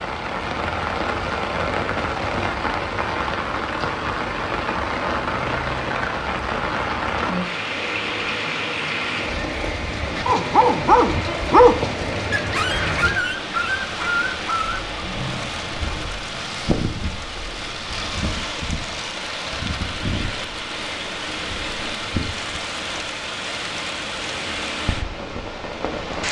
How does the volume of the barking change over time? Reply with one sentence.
The loudness of the barking goes down.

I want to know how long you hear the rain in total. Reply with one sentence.
The rain can be heard for 26 seconds in total.